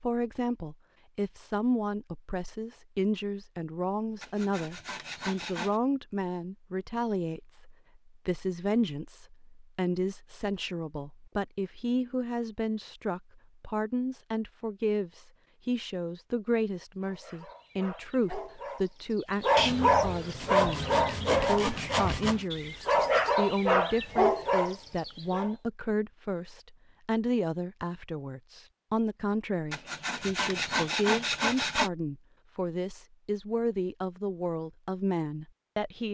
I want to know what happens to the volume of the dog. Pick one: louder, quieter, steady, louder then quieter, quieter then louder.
louder.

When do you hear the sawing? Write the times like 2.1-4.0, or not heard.
4.2-5.8, 19.6-22.4, 29.7-31.9.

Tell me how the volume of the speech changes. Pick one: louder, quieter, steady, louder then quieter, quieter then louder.
steady.